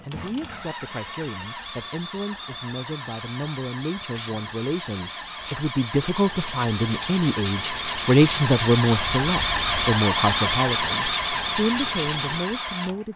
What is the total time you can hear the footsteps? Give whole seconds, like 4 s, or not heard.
not heard.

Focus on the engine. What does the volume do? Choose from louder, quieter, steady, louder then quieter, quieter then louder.
louder.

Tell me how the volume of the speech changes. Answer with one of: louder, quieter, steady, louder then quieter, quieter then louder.
louder then quieter.